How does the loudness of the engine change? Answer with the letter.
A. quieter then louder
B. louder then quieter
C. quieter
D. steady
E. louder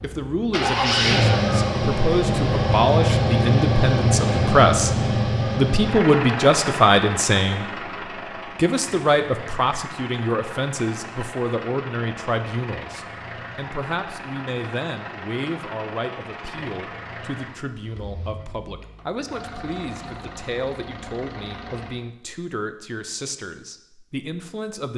C.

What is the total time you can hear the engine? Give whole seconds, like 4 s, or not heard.
22 s.